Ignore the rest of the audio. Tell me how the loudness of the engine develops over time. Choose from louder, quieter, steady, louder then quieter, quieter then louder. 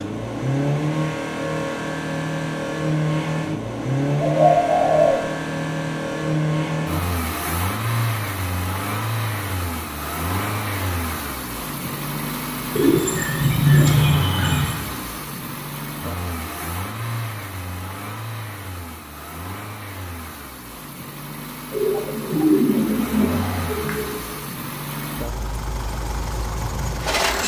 quieter.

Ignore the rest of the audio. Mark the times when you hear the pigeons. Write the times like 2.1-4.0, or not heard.
4.2-5.2, 12.8-14.8, 21.7-24.1.